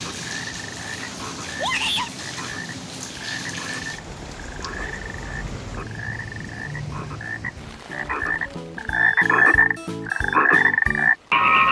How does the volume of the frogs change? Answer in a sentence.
The volume of the frogs goes up.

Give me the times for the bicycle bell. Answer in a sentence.
The bicycle bell can't be heard in this clip.